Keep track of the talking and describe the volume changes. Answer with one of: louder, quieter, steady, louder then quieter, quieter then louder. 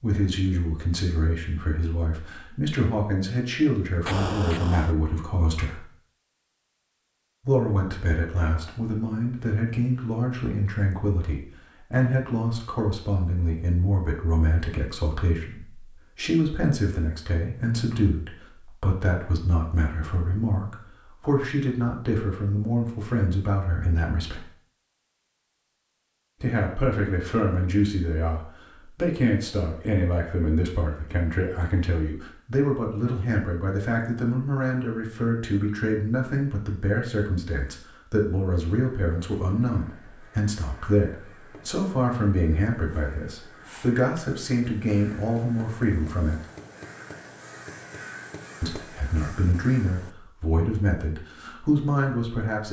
steady.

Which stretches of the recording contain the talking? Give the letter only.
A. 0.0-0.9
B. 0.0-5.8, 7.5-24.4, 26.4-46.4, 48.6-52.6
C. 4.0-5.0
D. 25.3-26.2
B.